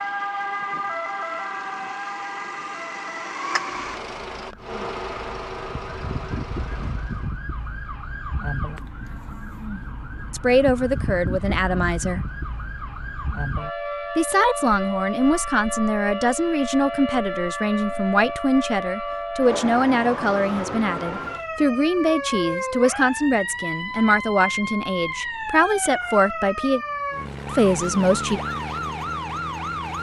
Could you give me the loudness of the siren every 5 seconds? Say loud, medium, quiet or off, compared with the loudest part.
loud, medium, loud, loud, loud, loud.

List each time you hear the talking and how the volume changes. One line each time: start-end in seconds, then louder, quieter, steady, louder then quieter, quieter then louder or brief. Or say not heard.
10.3-12.2 brief
14.2-26.8 steady
27.5-28.4 brief.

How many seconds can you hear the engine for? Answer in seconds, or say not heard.
7 s.